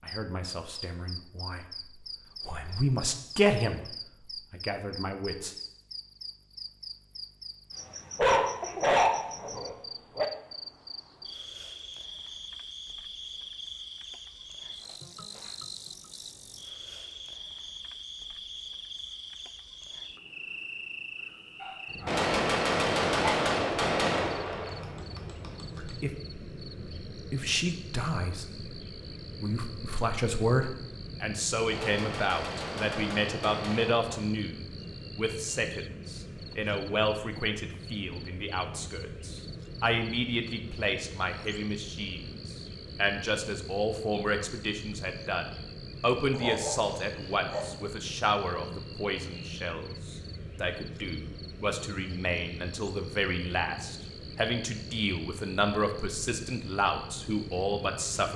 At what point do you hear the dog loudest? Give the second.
9 s.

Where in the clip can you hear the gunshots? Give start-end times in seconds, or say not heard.
22.1-25.9, 31.7-34.3.